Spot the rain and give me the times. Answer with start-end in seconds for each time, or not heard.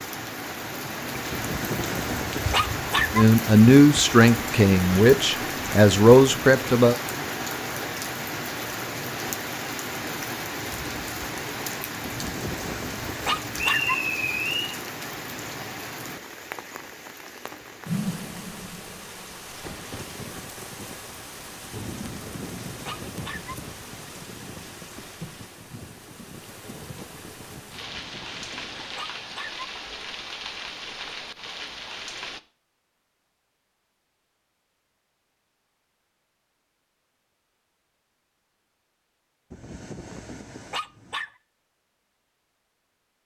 0.0-32.4.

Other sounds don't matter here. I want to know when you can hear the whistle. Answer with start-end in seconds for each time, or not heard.
13.6-14.8.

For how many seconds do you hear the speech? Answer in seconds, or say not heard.
4 s.